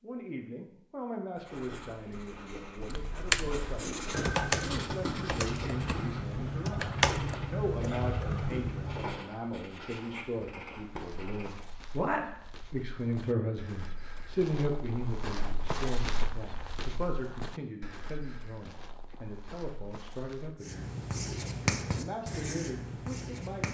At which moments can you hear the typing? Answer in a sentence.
The typing can be heard from 2.8 to 9.3 s.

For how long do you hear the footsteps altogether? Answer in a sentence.
You can hear the footsteps for 10 seconds altogether.